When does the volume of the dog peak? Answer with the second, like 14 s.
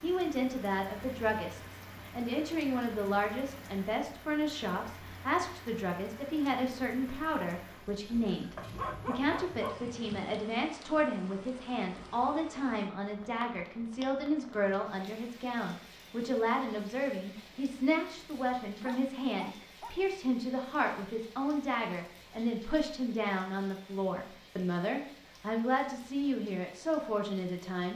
9 s.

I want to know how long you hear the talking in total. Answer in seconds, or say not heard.
28 s.